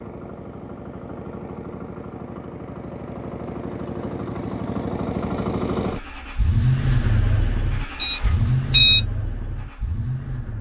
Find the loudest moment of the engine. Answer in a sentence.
The volume of the engine peaks at 7 seconds.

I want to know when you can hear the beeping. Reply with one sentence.
The beeping can be heard from 8.0 to 9.1 s.